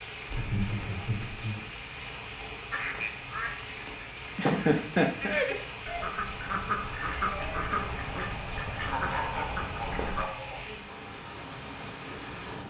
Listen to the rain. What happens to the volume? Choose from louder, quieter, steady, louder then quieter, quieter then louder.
steady.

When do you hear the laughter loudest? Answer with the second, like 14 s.
5 s.